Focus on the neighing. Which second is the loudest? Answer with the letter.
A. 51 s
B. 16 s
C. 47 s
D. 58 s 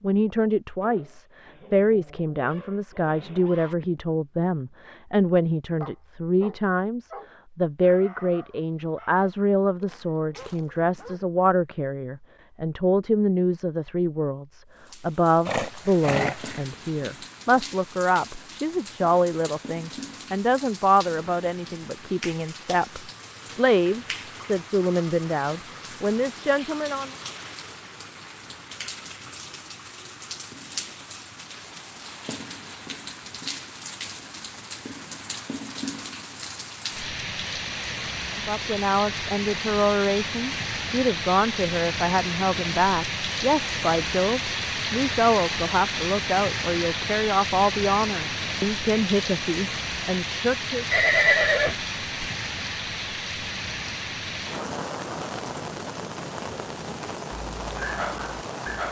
A.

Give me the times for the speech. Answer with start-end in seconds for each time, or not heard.
0.0-27.1, 38.4-50.9.